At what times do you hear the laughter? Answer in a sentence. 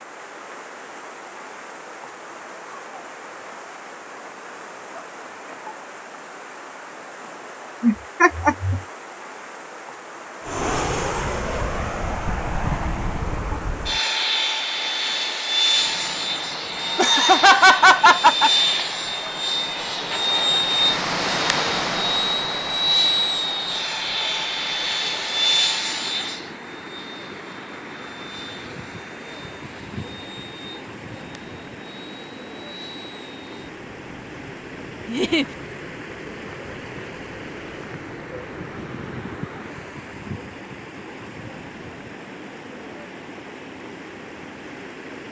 The laughter can be heard from 7.8 to 8.8 s, from 16.9 to 18.5 s and from 35.0 to 35.5 s.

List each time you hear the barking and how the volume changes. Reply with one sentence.
You can't hear the barking here.